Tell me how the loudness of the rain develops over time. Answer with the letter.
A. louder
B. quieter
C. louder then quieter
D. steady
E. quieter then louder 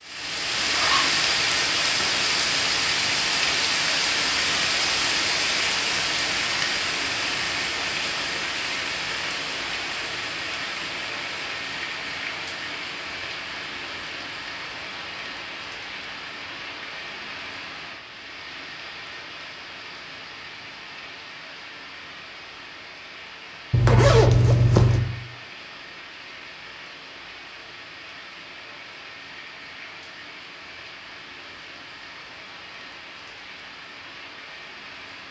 B.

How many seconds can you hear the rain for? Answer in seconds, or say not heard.
35 s.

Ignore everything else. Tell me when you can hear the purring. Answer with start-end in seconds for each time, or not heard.
not heard.